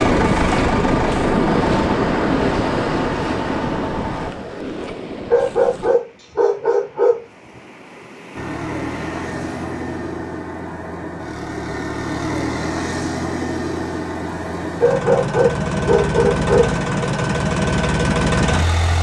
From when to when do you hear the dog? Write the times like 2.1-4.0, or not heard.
5.3-7.2, 14.8-16.7.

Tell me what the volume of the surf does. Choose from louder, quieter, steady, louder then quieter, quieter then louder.
quieter then louder.